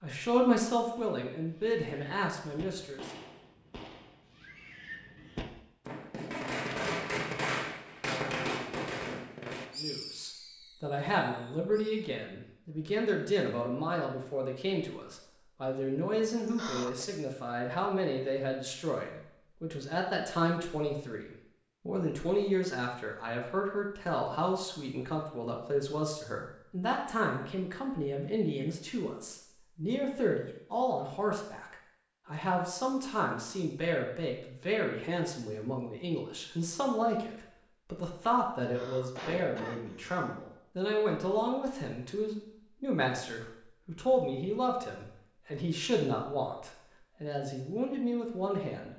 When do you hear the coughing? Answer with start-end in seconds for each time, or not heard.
16.4-17.1, 38.6-40.4.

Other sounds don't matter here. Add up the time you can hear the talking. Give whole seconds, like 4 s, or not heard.
42 s.